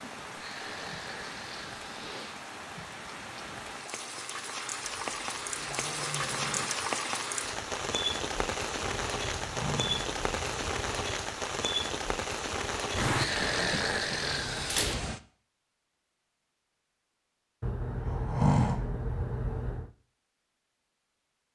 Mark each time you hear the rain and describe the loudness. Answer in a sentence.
You can hear the rain from 0.0 to 15.2 s, getting louder.